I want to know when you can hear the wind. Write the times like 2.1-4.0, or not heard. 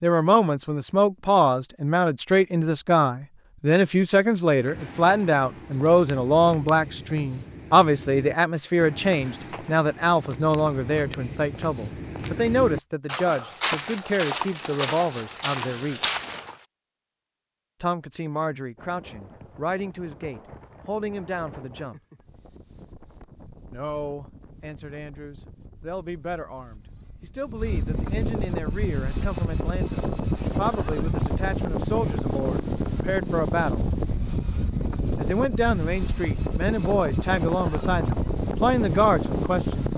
18.8-39.9.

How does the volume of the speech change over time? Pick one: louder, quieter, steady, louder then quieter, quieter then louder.
quieter then louder.